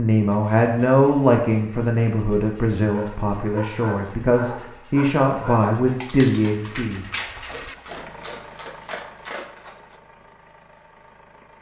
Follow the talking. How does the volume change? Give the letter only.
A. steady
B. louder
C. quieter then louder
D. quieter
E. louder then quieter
C.